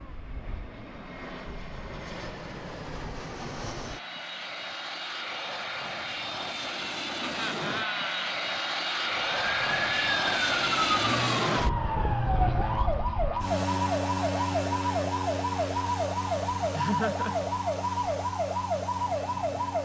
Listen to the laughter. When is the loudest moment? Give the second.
17 s.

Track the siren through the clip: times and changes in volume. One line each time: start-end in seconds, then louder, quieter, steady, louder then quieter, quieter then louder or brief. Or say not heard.
9.2-19.8 steady.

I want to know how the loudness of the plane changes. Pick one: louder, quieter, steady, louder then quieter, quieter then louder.
louder then quieter.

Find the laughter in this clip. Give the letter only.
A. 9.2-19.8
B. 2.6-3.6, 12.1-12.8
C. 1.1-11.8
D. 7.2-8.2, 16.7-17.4
D.